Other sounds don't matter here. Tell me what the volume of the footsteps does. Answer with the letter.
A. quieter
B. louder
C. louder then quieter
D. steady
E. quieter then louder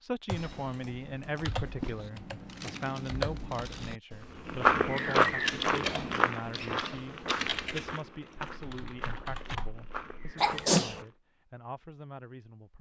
A.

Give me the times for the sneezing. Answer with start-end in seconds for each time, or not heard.
10.3-11.0.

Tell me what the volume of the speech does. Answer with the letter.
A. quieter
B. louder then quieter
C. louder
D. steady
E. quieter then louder
A.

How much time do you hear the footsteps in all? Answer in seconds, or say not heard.
7 s.